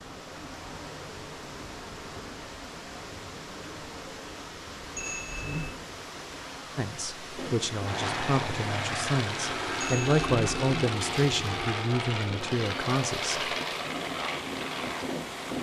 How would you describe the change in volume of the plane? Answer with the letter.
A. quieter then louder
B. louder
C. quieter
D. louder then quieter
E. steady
E.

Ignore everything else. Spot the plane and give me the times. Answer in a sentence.
The plane can be heard from 7.3 to 15.5 s.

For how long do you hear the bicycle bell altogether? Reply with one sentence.
The bicycle bell can be heard for 2 seconds in total.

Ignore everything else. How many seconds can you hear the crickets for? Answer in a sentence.
The crickets can't be heard in this clip.